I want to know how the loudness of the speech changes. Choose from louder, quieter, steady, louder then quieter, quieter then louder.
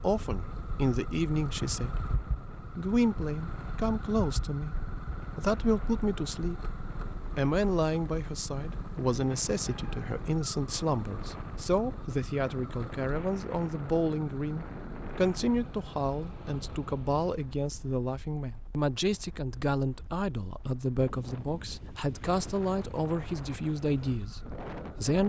steady.